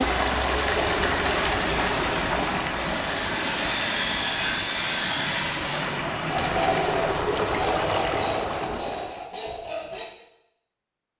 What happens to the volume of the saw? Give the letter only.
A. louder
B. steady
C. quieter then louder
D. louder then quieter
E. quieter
D.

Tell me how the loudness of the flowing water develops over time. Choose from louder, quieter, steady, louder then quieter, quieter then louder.
quieter then louder.